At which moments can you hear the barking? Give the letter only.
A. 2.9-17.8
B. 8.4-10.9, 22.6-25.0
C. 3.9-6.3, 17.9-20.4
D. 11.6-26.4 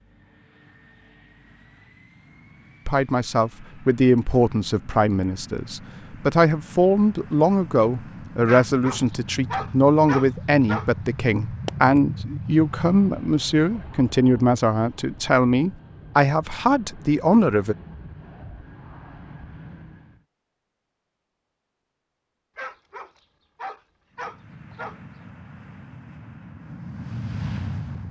B.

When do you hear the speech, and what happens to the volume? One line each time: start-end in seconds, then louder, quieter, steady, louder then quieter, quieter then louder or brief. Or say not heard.
2.9-17.8 steady.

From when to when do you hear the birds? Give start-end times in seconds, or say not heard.
not heard.